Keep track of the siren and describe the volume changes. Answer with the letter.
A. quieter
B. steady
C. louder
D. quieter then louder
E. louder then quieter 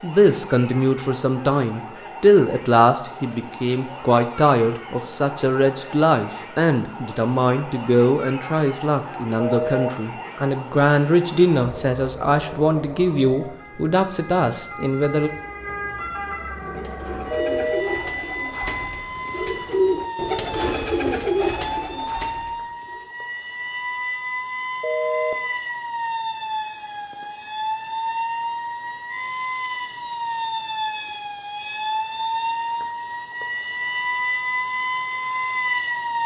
C.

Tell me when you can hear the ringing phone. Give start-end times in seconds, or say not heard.
9.4-9.9, 17.3-17.9, 24.8-25.4.